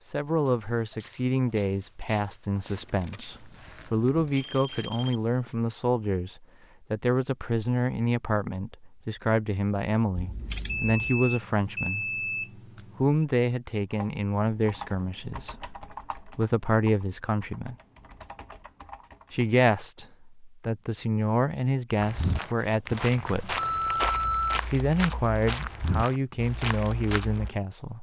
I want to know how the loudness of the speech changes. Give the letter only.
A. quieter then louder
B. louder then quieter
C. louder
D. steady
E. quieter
D.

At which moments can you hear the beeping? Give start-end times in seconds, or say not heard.
3.3-5.2, 10.7-13.2, 23.6-24.6.